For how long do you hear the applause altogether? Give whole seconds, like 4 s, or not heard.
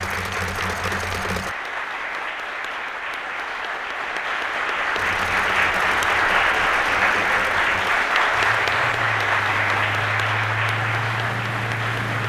12 s.